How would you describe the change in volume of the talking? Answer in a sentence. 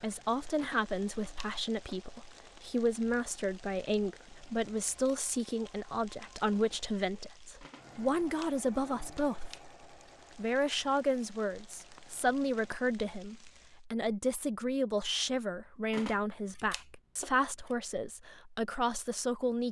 The loudness of the talking stays about the same.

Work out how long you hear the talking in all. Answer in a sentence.
The talking can be heard for 19 seconds in total.